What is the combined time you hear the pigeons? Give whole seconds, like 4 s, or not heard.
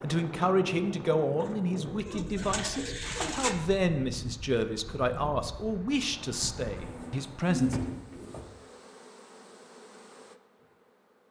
4 s.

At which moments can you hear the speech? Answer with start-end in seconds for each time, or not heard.
0.0-7.8.